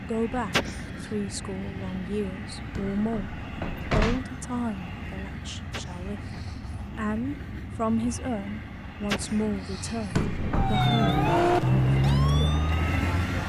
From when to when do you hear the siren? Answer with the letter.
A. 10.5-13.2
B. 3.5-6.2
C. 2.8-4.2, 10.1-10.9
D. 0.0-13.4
A.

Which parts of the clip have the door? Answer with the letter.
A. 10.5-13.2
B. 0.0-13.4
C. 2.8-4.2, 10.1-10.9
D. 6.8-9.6
C.